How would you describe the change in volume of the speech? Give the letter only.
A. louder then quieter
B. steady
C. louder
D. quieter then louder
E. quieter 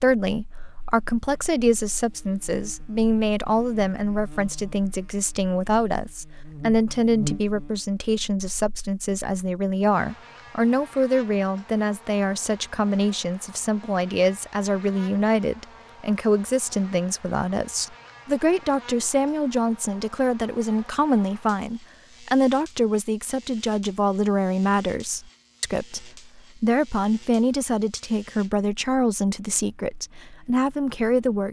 B.